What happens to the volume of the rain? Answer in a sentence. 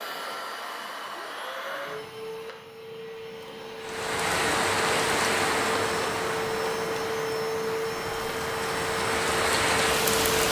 The loudness of the rain goes down, then up.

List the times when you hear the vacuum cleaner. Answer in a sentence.
You can hear the vacuum cleaner from 0.0 to 10.2 s.